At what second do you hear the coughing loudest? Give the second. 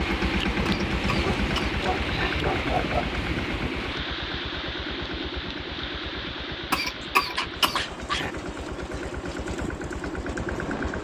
7 s.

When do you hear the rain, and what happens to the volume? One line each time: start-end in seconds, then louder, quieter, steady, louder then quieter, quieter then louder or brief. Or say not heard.
0.0-11.0 quieter.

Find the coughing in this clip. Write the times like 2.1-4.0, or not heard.
0.7-2.5, 6.7-8.3.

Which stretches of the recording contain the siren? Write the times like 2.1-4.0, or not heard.
not heard.